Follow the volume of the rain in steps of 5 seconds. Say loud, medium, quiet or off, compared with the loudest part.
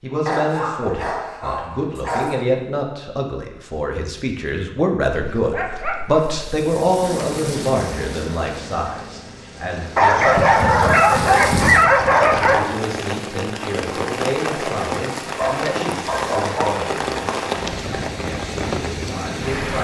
off, medium, loud, loud.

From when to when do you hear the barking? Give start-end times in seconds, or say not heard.
0.2-2.5, 5.1-6.3, 9.9-12.7, 15.3-16.8.